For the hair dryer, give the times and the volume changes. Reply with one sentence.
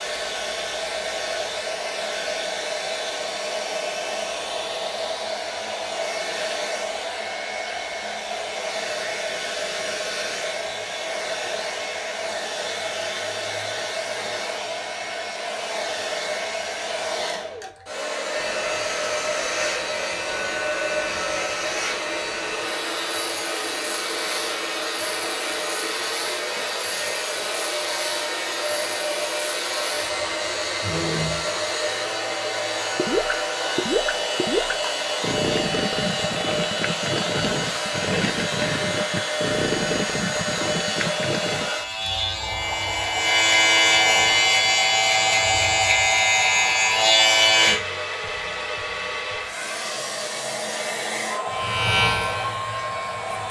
You can hear the hair dryer from 0.0 to 53.4 s, at a steady volume.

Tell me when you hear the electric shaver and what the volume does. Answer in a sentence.
You can hear the electric shaver from 18.3 to 47.8 s, getting louder; and briefly from 51.4 to 53.4 s.